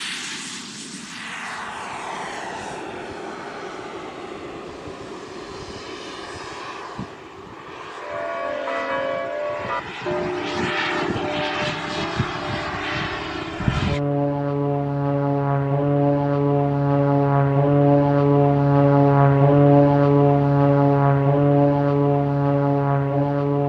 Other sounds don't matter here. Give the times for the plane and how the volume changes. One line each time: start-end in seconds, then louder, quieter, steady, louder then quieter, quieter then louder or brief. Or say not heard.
0.0-23.6 louder.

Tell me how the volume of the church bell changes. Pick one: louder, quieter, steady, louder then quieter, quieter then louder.
quieter.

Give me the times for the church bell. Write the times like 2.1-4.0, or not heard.
8.0-13.8.